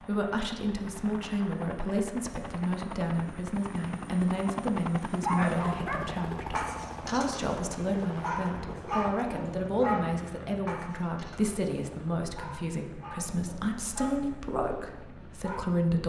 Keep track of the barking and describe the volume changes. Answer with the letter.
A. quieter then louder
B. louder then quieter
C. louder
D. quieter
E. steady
D.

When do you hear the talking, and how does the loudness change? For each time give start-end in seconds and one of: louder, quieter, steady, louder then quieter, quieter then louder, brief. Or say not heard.
0.0-16.0 steady.